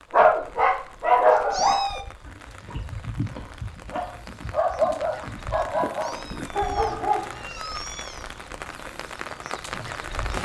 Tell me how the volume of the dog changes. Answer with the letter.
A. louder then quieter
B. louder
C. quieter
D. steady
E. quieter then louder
E.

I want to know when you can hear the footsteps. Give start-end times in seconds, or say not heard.
not heard.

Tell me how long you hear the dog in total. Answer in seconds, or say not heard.
7 s.